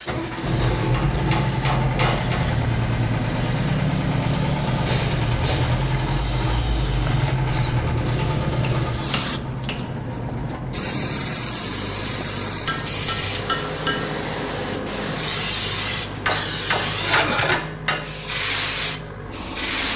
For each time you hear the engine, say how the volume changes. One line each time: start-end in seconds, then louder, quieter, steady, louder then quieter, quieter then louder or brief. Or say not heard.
0.0-19.9 quieter.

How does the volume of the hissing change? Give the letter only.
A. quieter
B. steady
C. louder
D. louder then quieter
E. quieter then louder
C.